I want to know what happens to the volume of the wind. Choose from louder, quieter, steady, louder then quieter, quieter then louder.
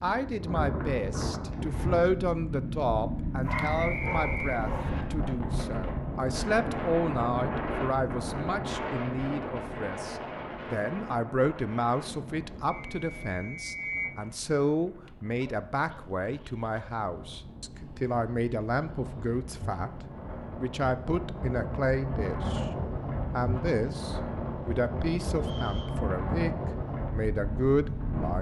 quieter then louder.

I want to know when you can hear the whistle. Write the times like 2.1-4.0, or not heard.
3.5-5.0, 12.7-14.2, 25.4-25.9.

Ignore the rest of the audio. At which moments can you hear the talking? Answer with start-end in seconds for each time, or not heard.
0.0-20.0, 20.6-22.6, 23.4-26.5, 27.1-28.3.